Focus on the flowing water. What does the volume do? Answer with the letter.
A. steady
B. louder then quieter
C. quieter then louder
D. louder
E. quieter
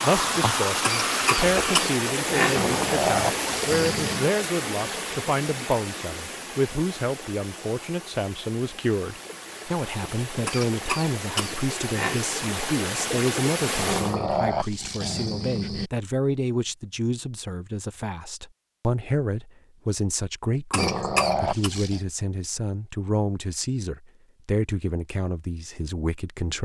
C.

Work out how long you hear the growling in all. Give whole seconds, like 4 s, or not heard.
5 s.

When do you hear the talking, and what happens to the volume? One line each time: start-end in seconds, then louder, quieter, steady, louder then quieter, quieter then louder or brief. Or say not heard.
0.0-26.6 steady.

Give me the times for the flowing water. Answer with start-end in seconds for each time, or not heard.
0.0-14.2.